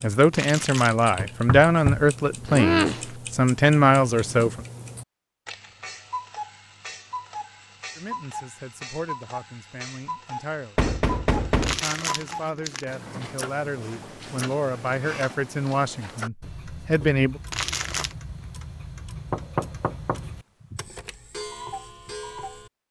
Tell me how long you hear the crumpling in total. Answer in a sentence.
You can hear the crumpling for 3 seconds altogether.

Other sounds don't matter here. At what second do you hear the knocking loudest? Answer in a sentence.
The volume of the knocking peaks at 3 seconds.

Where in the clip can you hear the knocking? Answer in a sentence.
The knocking can be heard from 1.1 to 3.1 s, from 10.8 to 11.8 s and from 19.3 to 20.9 s.